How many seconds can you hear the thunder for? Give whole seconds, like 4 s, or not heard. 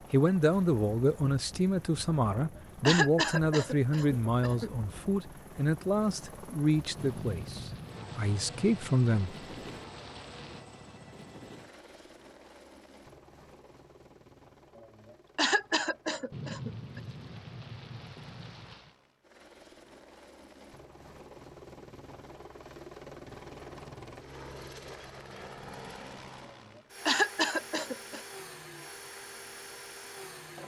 6 s.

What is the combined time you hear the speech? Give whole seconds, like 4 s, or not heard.
9 s.